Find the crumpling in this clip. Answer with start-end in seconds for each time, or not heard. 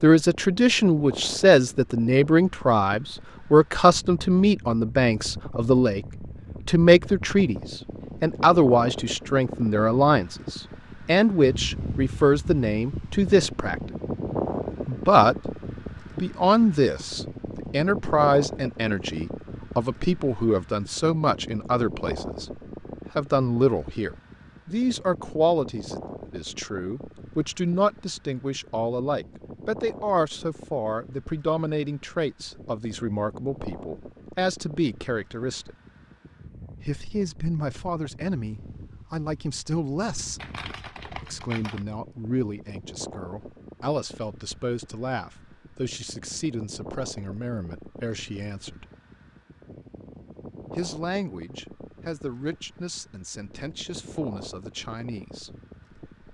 40.4-41.9.